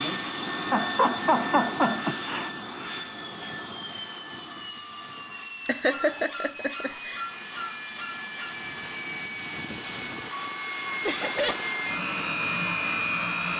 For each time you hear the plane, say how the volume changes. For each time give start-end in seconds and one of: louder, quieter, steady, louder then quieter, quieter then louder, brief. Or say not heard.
0.0-13.5 quieter then louder.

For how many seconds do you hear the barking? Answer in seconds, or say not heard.
3 s.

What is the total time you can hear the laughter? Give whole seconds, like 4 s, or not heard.
4 s.